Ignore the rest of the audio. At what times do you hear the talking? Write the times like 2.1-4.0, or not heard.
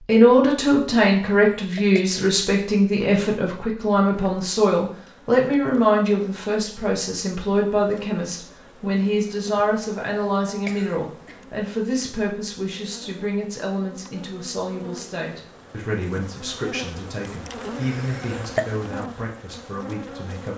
0.1-20.5.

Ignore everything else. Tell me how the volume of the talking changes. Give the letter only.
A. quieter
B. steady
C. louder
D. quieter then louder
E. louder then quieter
A.